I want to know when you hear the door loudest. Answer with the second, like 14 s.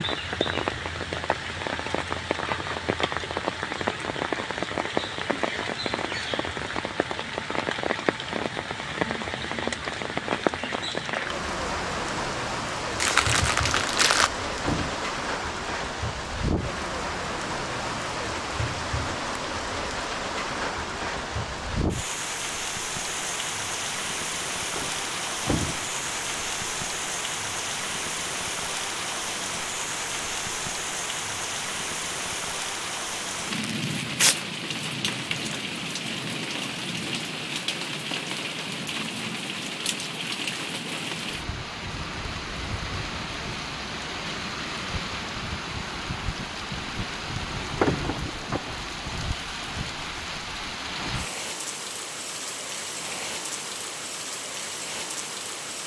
48 s.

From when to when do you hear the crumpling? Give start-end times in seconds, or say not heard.
13.0-14.3, 33.8-34.4.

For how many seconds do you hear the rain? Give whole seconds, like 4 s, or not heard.
56 s.